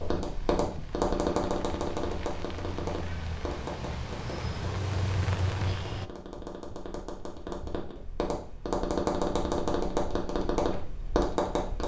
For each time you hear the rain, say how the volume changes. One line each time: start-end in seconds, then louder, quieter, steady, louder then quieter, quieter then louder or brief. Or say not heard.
0.0-6.1 louder.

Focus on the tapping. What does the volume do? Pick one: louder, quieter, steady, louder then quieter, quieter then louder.
quieter then louder.